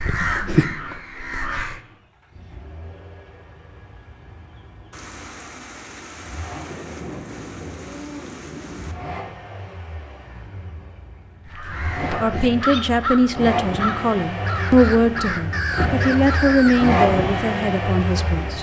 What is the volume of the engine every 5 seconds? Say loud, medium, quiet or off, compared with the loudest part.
quiet, quiet, medium, loud.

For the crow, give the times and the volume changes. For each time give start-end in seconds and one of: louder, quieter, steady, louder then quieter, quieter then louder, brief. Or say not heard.
0.0-1.8 brief
11.4-16.9 steady.